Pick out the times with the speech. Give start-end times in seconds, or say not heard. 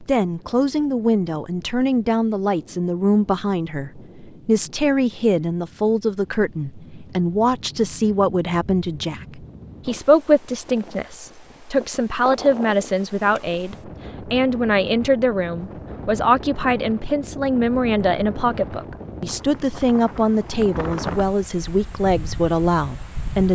0.0-23.5.